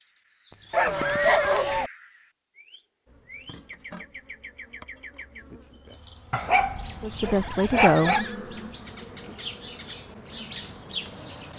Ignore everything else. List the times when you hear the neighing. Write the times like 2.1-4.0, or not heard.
0.5-1.6, 7.2-8.3.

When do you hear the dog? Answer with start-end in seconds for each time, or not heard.
0.7-1.9, 6.3-8.2.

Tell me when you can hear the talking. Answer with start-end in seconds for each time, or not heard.
7.0-8.2.